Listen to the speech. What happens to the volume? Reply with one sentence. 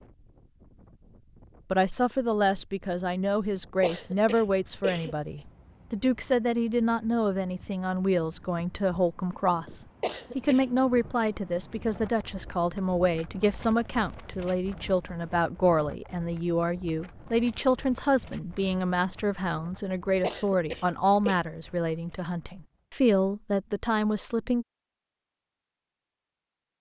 The volume of the speech stays about the same.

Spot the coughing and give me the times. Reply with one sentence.
You can hear the coughing from 3.8 to 5.2 s, from 10.0 to 10.7 s and from 20.2 to 21.4 s.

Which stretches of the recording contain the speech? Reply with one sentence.
You can hear the speech from 1.7 to 24.6 s.